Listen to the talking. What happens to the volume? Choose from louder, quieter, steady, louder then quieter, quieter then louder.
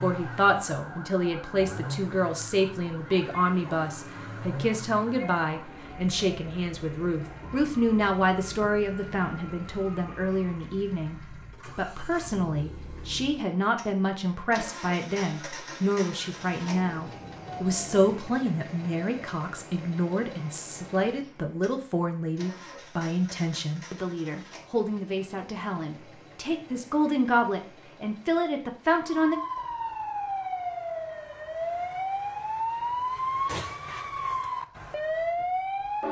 steady.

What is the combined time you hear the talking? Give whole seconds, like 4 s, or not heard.
29 s.